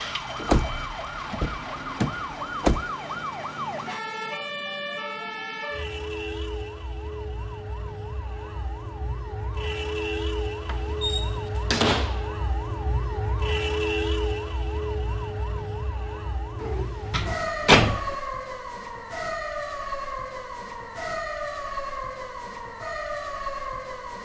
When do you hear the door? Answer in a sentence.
The door can be heard from 0.5 to 2.9 s, from 10.7 to 12.2 s and from 16.6 to 18.1 s.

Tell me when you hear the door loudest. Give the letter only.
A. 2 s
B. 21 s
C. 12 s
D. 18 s
D.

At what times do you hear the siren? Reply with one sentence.
The siren can be heard from 0.0 to 24.1 s.